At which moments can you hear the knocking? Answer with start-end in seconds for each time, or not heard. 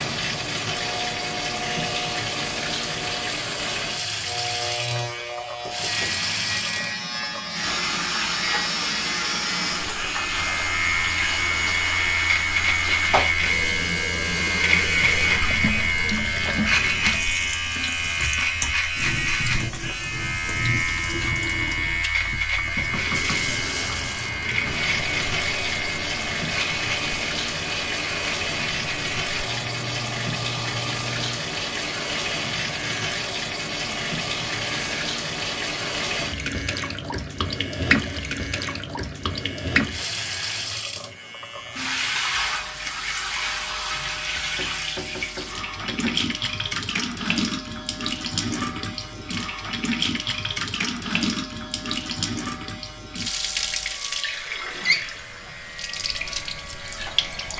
5.7-6.2, 22.8-23.6, 44.5-46.1.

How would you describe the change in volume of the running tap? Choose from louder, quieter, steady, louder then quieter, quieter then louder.
steady.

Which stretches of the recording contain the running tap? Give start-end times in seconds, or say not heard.
0.0-57.5.